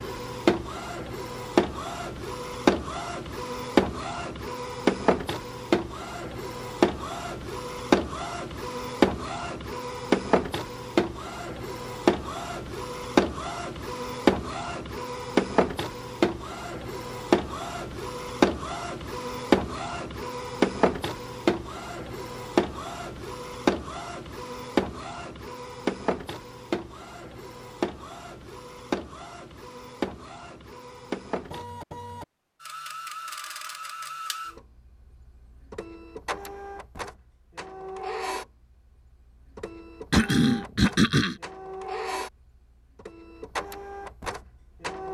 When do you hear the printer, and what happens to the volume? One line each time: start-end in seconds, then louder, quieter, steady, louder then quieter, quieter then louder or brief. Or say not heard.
0.0-45.0 quieter.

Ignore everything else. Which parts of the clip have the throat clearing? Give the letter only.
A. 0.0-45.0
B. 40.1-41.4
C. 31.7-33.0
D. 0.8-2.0
B.